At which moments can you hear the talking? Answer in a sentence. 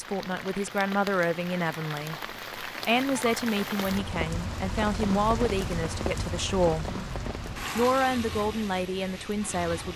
You can hear the talking from 0.0 to 6.9 s and from 7.8 to 9.9 s.